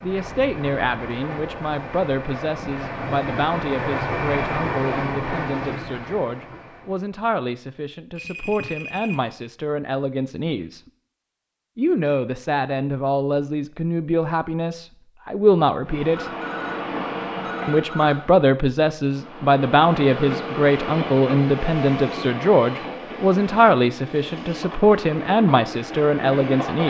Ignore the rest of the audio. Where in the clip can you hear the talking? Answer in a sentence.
The talking can be heard from 0.0 to 10.8 s, from 11.8 to 16.3 s and from 17.6 to 26.8 s.